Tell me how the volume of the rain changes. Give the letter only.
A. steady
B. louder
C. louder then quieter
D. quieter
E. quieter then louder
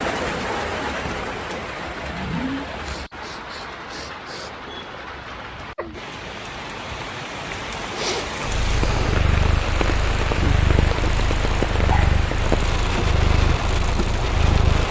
E.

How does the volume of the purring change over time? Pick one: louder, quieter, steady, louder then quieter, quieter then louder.
steady.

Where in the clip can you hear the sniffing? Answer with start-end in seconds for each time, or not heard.
2.8-4.5, 7.9-9.2.